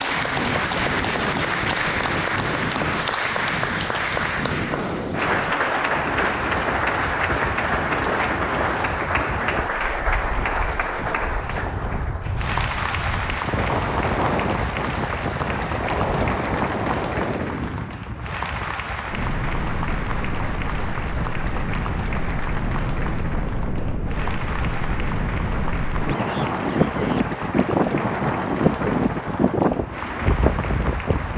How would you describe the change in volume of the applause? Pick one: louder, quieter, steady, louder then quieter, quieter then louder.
quieter.